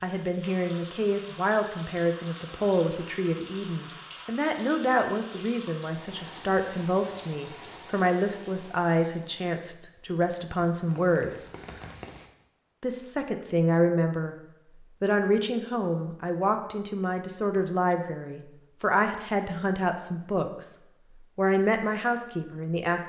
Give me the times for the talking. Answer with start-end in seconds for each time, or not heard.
0.0-11.5, 12.8-14.3, 15.0-20.8, 21.4-23.0.